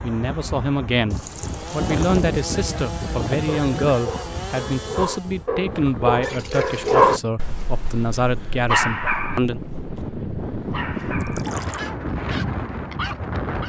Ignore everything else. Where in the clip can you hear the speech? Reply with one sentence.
You can hear the speech from 0.0 to 9.6 s.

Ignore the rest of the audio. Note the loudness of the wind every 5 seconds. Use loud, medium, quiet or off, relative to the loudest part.
loud, medium, loud.